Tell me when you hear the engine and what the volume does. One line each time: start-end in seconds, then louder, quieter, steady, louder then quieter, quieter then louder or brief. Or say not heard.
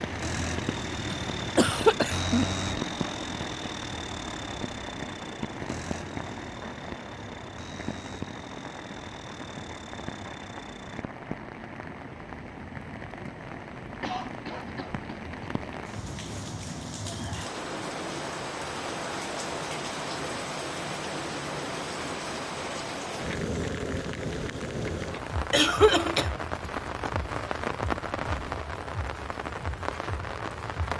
0.0-11.1 quieter.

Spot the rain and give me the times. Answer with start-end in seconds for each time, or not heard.
0.0-30.9.